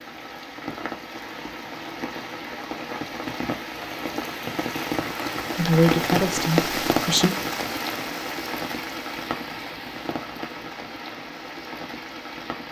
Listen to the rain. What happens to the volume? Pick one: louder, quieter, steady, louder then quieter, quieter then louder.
louder then quieter.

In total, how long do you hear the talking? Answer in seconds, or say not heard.
2 s.